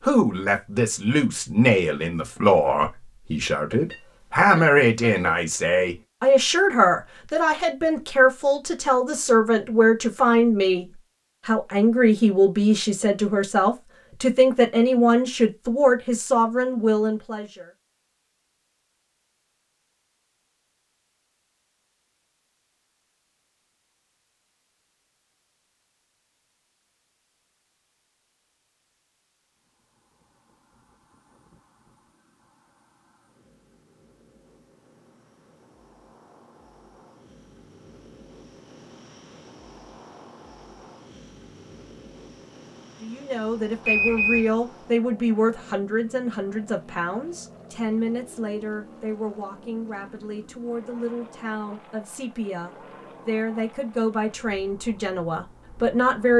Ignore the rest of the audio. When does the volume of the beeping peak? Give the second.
44 s.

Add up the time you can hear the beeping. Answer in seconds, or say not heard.
2 s.